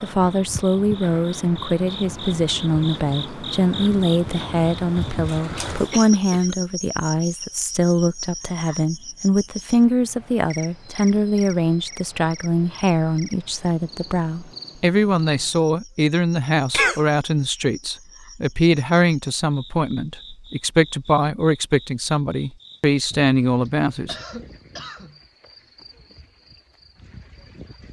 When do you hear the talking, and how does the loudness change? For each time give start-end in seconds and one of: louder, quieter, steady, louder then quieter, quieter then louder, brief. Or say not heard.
0.0-24.1 steady.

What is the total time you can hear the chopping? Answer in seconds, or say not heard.
not heard.